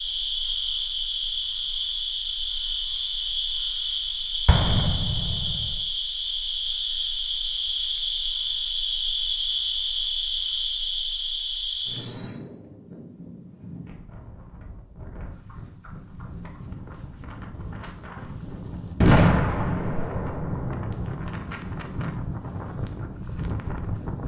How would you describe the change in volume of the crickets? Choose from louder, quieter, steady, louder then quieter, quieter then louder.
steady.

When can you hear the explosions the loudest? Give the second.
19 s.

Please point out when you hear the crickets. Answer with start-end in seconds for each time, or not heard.
0.0-12.4.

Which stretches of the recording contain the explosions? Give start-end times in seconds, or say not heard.
4.5-5.7, 19.0-21.1.